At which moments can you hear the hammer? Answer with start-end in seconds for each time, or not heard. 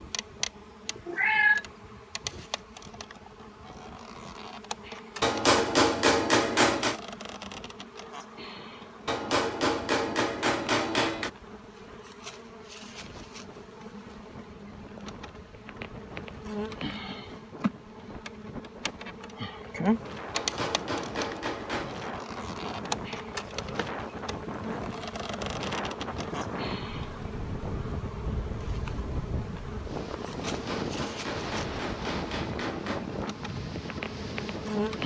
5.2-7.0, 9.1-11.3, 20.3-21.9, 30.4-33.2.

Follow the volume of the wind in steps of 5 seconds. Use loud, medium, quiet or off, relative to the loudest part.
quiet, quiet, quiet, medium, loud, loud, loud.